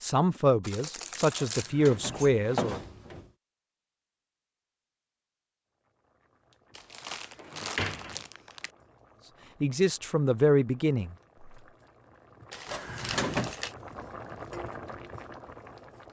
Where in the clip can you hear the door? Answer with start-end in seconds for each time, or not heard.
1.4-3.3, 7.3-8.2, 12.7-13.6.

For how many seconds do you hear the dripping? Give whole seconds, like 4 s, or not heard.
not heard.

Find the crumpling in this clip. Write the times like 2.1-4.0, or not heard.
0.6-1.8, 6.8-8.7, 12.5-13.8.